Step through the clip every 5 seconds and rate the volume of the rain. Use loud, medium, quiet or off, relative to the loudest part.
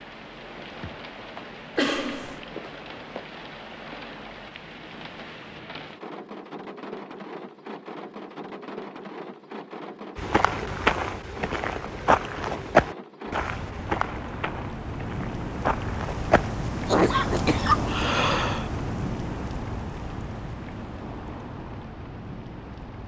medium, medium, medium, loud, medium.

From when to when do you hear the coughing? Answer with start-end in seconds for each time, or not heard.
1.8-2.4, 16.9-18.6.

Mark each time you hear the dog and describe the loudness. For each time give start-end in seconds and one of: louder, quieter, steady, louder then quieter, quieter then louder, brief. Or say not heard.
not heard.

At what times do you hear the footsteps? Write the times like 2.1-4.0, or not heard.
10.2-16.7.